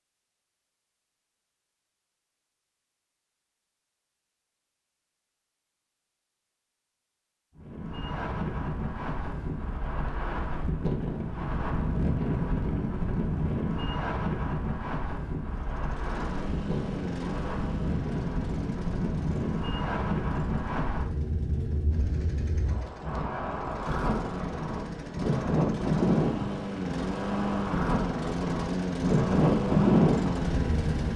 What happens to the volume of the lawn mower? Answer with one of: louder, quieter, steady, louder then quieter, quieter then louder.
quieter then louder.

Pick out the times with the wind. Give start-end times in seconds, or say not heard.
7.5-31.1.